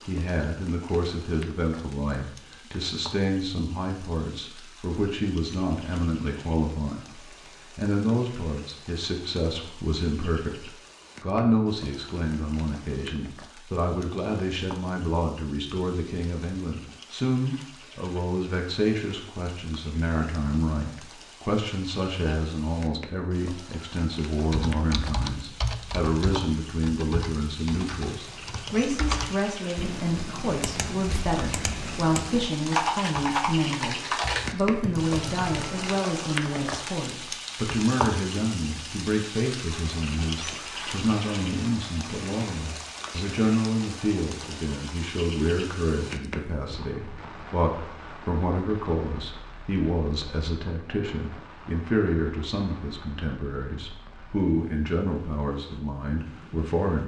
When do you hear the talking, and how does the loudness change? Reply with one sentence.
You can hear the talking from 0.1 to 7.2 s, at a steady volume; and from 7.8 to 57.0 s, at a steady volume.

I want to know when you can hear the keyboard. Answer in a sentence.
The keyboard can be heard from 24.5 to 36.0 s.